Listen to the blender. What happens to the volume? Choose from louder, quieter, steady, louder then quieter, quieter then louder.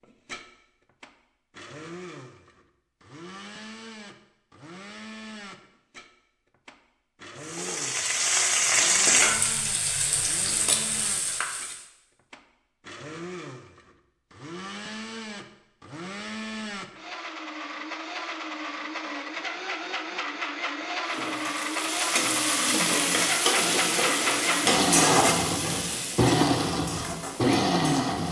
louder.